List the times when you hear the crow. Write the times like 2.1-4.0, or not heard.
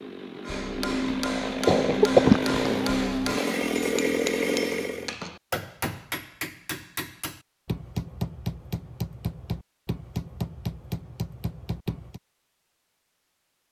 not heard.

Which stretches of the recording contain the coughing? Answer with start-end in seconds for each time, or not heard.
1.6-2.8.